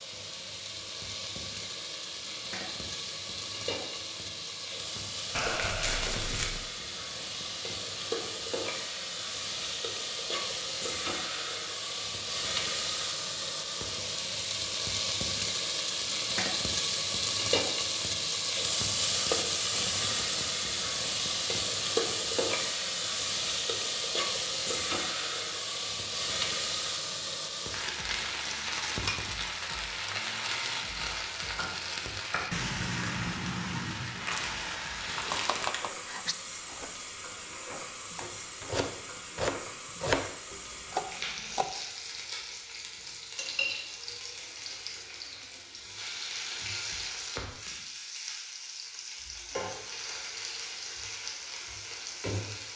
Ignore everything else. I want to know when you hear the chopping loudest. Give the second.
40 s.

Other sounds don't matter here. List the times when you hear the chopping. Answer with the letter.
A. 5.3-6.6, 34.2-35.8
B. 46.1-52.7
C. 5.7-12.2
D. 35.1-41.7
D.